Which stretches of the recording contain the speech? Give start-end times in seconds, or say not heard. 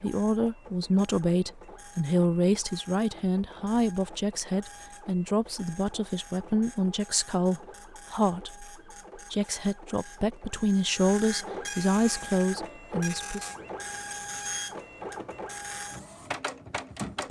0.0-13.5.